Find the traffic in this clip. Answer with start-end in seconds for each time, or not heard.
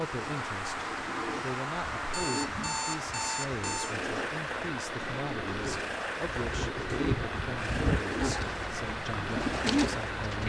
0.0-10.4.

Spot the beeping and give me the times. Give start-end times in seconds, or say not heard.
2.1-4.0.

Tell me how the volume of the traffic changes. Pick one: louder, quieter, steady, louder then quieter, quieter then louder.
steady.